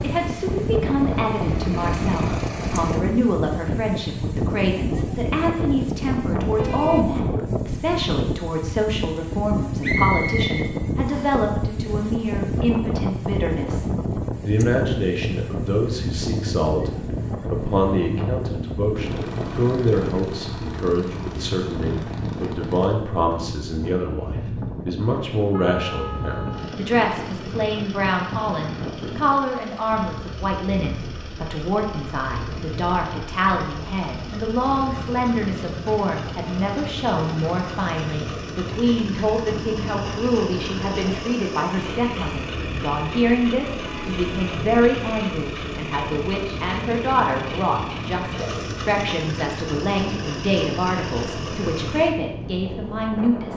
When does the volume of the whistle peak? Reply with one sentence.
The loudest moment of the whistle is at 10 seconds.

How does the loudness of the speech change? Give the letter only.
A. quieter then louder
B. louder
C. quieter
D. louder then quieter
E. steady
E.